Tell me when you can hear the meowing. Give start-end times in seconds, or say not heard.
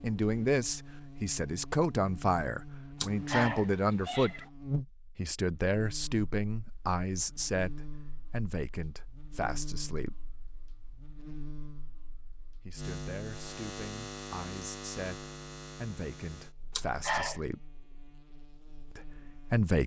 3.0-4.5, 16.7-17.4.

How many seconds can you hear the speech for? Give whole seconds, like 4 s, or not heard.
15 s.